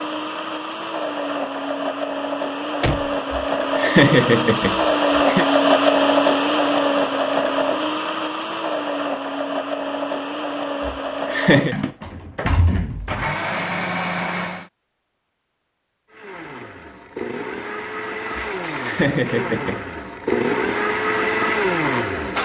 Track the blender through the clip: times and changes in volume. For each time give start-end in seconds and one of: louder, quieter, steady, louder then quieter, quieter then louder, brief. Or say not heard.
0.0-14.7 louder then quieter
16.1-22.4 louder.